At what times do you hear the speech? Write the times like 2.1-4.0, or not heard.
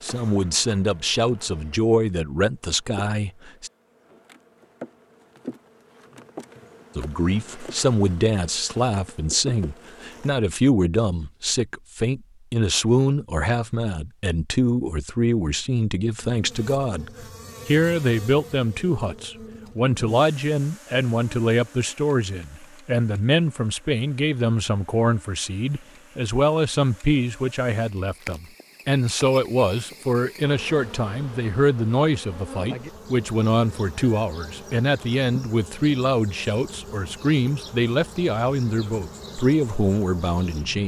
0.0-3.7, 7.0-40.8.